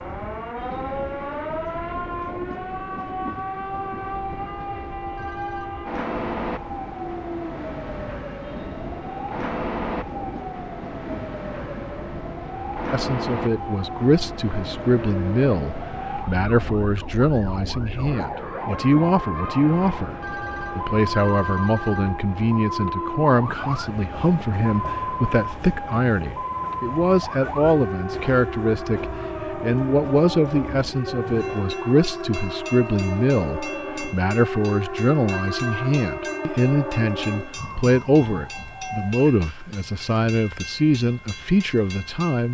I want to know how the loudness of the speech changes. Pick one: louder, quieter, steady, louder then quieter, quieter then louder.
steady.